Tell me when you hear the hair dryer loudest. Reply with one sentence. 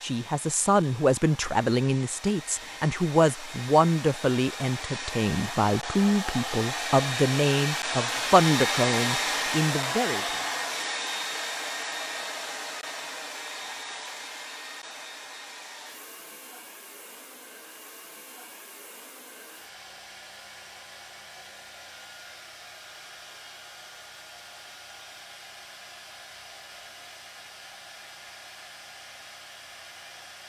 The loudest moment of the hair dryer is at 9 seconds.